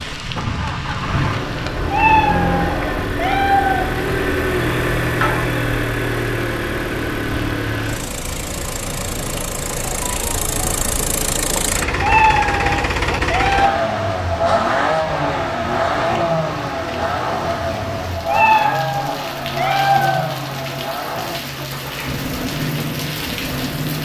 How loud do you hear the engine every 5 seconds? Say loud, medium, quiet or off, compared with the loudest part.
loud, loud, loud, loud, medium.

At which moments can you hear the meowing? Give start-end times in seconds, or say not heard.
1.9-3.9, 12.0-13.7, 18.2-20.2.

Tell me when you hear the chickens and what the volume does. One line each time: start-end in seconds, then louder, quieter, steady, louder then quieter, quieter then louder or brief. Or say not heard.
not heard.